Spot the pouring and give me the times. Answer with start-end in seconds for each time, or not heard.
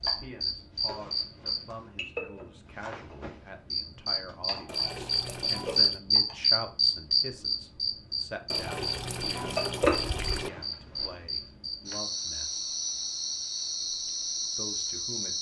4.7-6.0, 8.5-10.5.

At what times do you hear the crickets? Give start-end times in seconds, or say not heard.
0.0-15.3.